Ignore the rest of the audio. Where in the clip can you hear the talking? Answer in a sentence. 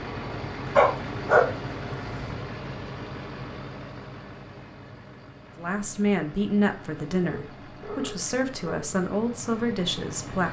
You can hear the talking from 5.5 to 10.4 s.